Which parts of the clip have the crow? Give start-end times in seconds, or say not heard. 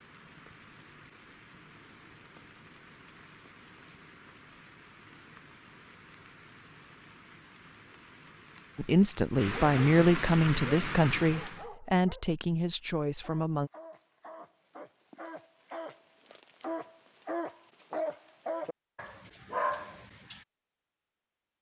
not heard.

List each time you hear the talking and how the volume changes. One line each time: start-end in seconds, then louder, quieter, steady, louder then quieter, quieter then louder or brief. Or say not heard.
8.8-13.7 quieter.